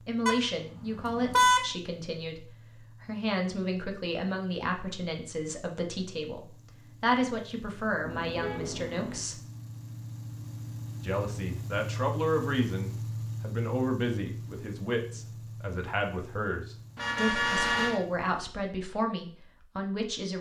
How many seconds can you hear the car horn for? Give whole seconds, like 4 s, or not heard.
4 s.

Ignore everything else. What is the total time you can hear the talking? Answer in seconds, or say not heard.
19 s.